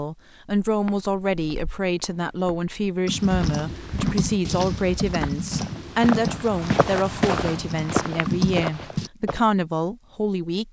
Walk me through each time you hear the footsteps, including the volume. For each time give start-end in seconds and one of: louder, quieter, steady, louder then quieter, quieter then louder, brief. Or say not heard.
0.7-9.4 louder.